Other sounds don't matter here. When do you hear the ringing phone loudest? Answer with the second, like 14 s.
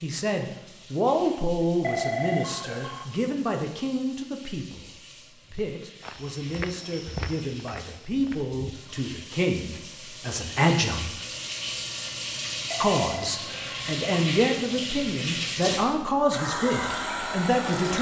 2 s.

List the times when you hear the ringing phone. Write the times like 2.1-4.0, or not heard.
1.8-3.0, 12.7-13.9.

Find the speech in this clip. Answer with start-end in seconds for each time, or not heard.
0.0-11.2, 12.8-17.9.